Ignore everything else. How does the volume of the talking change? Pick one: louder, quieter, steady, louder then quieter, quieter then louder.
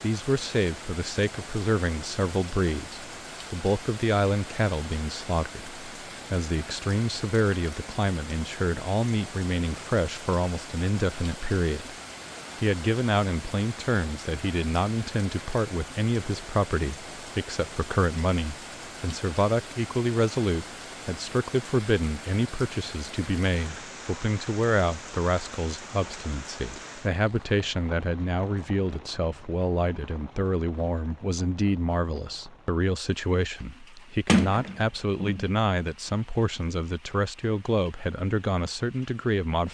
steady.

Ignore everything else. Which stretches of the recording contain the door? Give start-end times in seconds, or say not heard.
34.2-35.5.